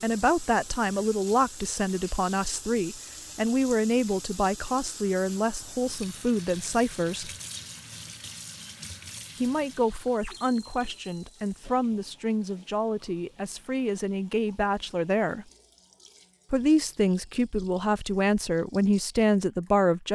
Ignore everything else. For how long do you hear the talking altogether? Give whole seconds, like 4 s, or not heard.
17 s.